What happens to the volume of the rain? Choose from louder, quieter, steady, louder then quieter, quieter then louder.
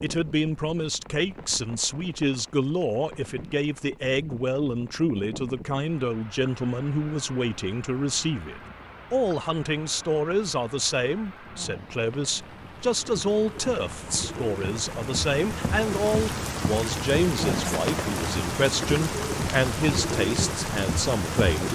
louder.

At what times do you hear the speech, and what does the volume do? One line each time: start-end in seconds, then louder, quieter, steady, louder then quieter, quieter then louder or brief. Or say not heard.
0.0-21.7 steady.